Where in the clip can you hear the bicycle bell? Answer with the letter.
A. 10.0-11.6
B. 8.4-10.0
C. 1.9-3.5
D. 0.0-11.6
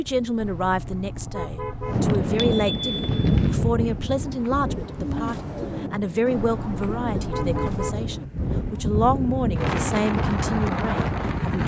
C.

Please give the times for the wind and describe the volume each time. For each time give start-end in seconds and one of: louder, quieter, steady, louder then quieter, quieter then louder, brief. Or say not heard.
0.0-11.6 quieter then louder.